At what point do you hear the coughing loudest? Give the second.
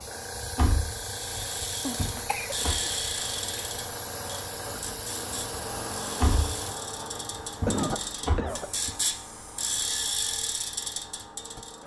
8 s.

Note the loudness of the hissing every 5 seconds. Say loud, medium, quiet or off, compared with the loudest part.
loud, loud, off.